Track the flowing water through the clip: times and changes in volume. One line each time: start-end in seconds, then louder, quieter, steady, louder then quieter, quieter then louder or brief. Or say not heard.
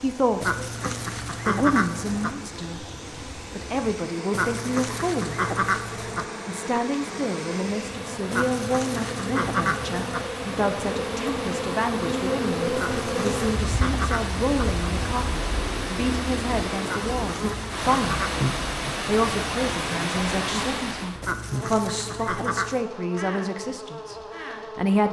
0.0-21.2 louder.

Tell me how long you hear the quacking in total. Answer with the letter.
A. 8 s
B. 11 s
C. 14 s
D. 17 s
B.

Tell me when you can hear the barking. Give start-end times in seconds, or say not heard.
not heard.